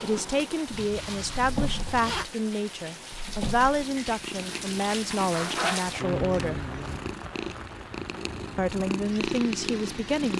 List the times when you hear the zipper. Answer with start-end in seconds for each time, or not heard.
0.7-2.2, 5.3-7.0.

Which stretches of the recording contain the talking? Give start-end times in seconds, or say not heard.
0.0-6.7, 8.6-10.3.